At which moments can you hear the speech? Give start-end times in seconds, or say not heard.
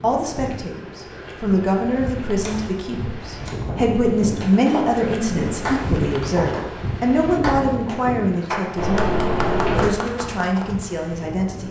0.0-11.6.